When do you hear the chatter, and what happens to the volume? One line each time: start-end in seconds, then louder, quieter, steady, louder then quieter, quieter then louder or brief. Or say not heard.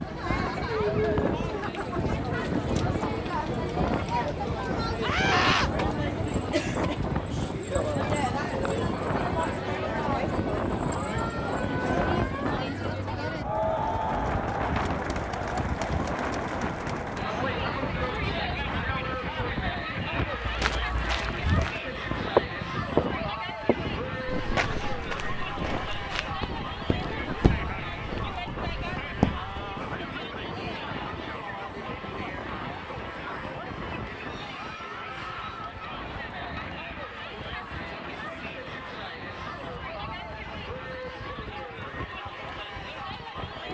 0.0-43.7 quieter.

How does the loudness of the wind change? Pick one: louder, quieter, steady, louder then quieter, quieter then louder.
quieter.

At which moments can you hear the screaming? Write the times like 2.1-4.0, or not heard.
5.0-5.7, 35.0-35.6.